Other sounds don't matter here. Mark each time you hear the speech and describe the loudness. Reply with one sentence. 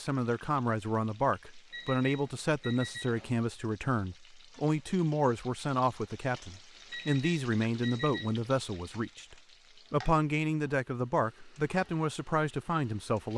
You can hear the speech from 0.0 to 13.3 s, at a steady volume.